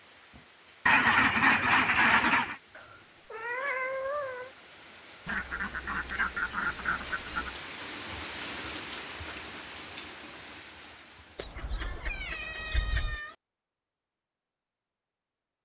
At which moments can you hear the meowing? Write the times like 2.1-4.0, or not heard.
2.8-4.5, 11.6-13.3.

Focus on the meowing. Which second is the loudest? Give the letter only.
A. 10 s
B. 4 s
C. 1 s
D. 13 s
B.